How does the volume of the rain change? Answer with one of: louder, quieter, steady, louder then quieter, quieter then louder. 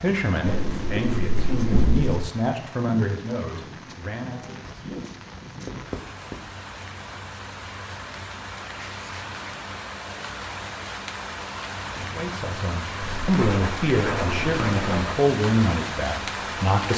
louder.